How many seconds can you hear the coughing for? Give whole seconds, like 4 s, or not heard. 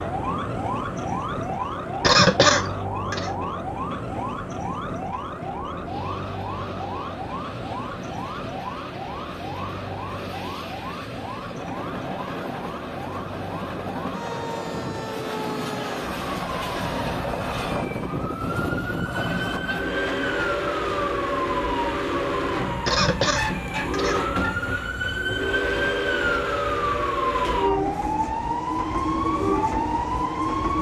3 s.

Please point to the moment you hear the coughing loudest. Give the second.
2 s.